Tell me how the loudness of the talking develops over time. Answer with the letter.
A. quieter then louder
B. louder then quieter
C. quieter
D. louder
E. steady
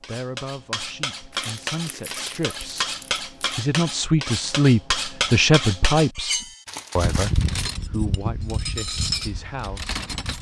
B.